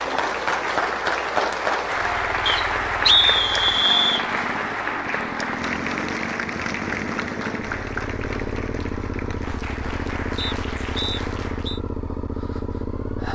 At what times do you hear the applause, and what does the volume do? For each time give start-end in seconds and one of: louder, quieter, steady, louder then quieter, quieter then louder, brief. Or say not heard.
0.0-11.8 quieter.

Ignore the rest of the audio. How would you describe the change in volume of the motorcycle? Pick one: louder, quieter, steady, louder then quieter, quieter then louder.
louder.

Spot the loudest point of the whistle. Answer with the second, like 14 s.
3 s.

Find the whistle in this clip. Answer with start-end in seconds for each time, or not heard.
2.5-4.2, 10.3-11.8.